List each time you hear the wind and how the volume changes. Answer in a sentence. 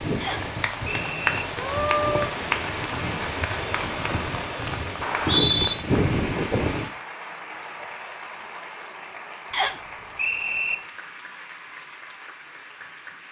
The wind can be heard from 0.0 to 6.9 s, getting louder.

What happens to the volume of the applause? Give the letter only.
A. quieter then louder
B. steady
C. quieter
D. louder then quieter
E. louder
C.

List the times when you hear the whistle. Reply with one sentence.
The whistle can be heard from 0.2 to 1.3 s, from 5.0 to 5.8 s and from 9.5 to 10.8 s.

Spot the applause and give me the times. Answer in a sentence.
You can hear the applause from 0.2 to 13.2 s.